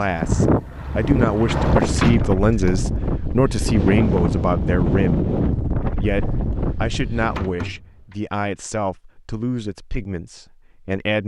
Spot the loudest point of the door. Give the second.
2 s.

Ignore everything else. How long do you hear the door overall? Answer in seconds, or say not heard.
2 s.